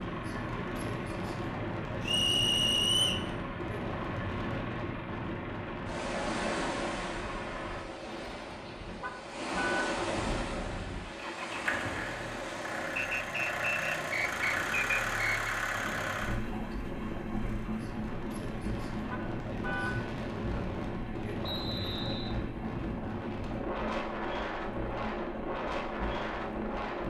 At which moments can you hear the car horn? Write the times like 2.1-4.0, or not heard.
9.0-9.9, 19.1-20.1.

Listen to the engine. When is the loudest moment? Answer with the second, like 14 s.
15 s.